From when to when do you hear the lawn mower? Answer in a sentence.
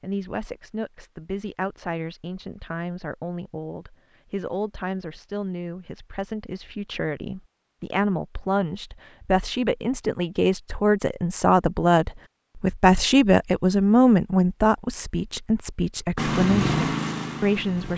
You can hear the lawn mower from 16.1 to 17.9 s.